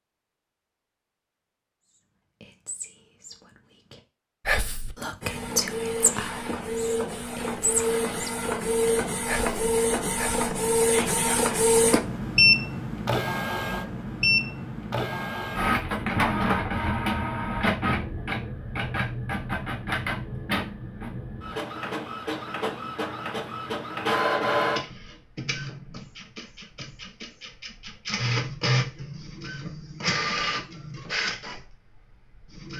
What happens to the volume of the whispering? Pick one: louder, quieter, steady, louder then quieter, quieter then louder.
louder then quieter.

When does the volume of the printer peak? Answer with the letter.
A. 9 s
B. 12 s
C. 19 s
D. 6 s
B.